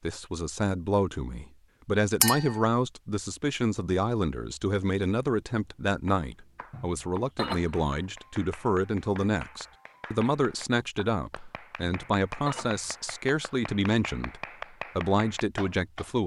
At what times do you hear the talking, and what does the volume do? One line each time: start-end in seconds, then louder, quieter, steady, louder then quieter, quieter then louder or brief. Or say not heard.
0.0-16.2 steady.